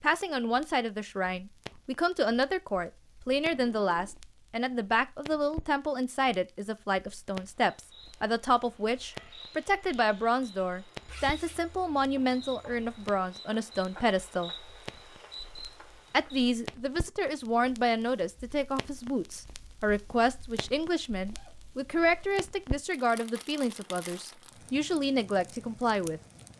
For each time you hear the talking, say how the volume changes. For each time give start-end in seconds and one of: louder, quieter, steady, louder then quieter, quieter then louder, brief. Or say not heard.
0.0-14.5 steady
16.1-26.2 steady.